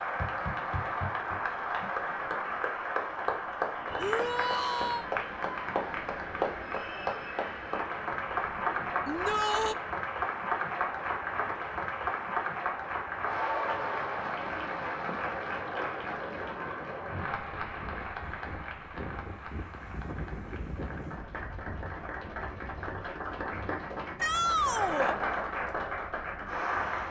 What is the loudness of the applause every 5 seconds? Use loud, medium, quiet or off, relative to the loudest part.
loud, loud, loud, medium, medium, loud.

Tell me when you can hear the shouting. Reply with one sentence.
You can hear the shouting from 4.0 to 5.0 s, from 9.1 to 9.8 s and from 24.1 to 25.1 s.